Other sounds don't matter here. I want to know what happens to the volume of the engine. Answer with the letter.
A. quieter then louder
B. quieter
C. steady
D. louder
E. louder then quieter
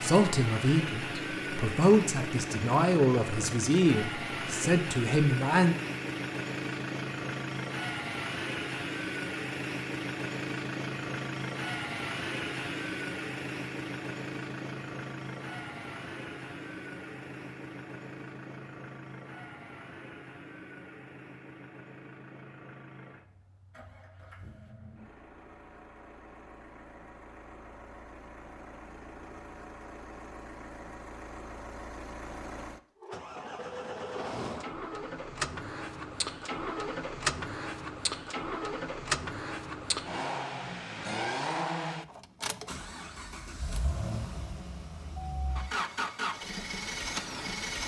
A.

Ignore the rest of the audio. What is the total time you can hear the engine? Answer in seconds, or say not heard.
48 s.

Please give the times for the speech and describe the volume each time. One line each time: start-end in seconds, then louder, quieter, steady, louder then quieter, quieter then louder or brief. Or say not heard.
0.0-5.8 steady.